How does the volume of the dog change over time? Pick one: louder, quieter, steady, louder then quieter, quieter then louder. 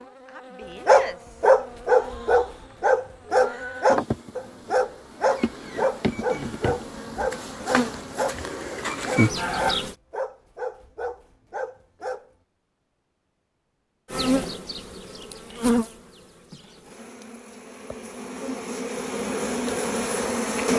quieter.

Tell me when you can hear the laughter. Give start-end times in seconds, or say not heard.
not heard.